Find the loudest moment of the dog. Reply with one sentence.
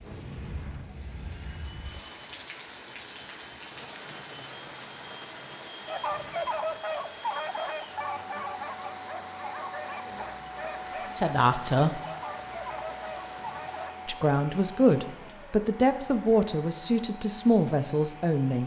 The volume of the dog peaks at 7 seconds.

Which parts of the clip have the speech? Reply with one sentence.
You can hear the speech from 11.2 to 12.0 s and from 14.1 to 18.6 s.